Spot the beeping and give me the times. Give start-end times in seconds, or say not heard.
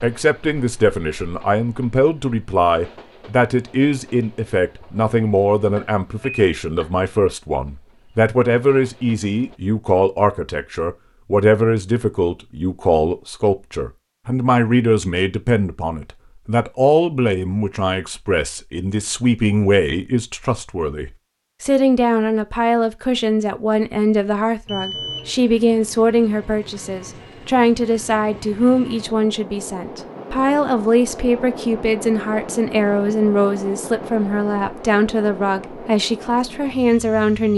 5.8-6.9, 24.6-25.4.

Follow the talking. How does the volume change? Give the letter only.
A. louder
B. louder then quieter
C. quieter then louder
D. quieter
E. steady
E.